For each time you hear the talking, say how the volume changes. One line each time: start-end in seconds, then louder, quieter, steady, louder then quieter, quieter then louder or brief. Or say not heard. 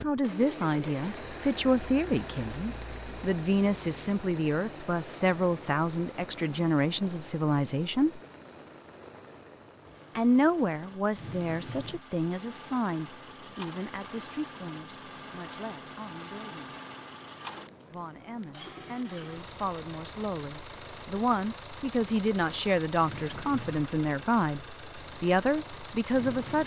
0.0-8.2 steady
10.2-16.8 quieter
17.9-26.6 louder.